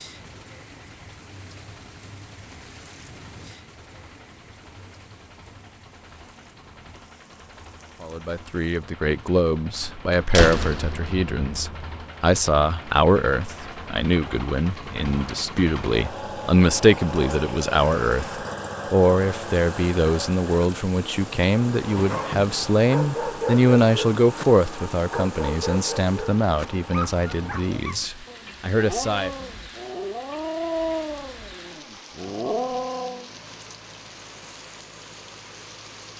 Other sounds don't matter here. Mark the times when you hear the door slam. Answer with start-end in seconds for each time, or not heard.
9.8-12.0.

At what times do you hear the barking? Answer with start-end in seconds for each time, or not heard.
21.8-33.2.